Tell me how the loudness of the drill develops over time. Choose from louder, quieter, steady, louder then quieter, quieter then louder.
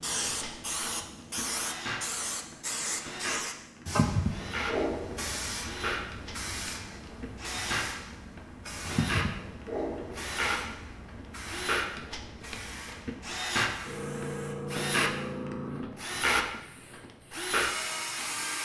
louder.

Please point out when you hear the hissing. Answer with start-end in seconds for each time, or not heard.
0.0-18.6.